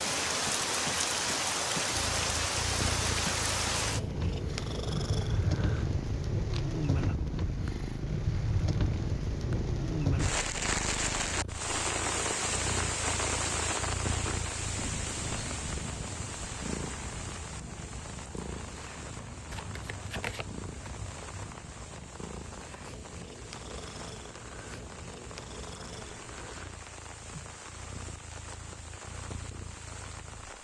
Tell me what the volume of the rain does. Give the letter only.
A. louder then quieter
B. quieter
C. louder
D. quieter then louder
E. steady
B.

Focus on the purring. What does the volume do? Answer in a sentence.
The loudness of the purring goes down.